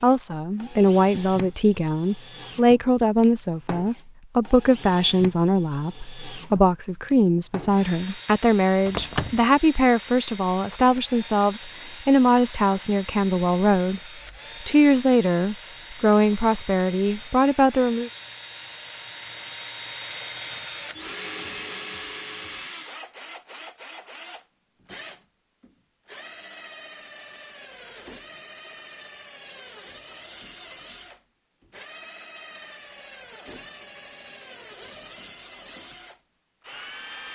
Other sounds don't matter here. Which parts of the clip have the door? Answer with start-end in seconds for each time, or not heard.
8.8-9.4.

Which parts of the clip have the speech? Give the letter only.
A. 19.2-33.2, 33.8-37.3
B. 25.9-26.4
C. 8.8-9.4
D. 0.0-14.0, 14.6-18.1
D.